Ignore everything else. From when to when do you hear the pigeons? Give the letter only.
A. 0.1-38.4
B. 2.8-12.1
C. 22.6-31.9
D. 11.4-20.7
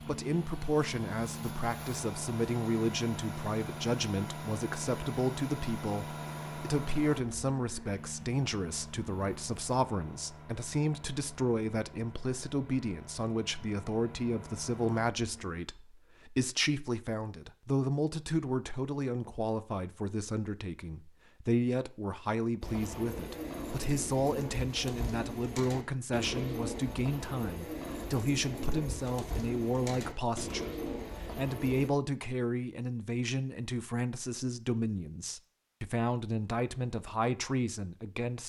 C.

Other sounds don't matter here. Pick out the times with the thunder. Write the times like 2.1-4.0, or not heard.
not heard.